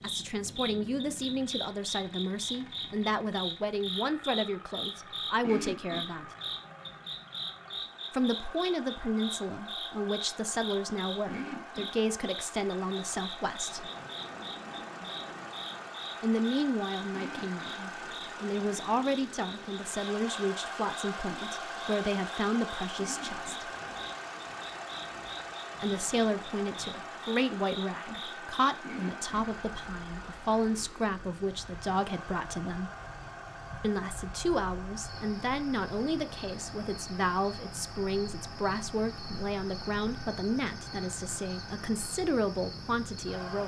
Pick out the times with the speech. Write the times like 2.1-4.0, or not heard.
0.0-6.3, 8.1-13.9, 16.2-23.7, 25.8-32.9, 33.8-43.6.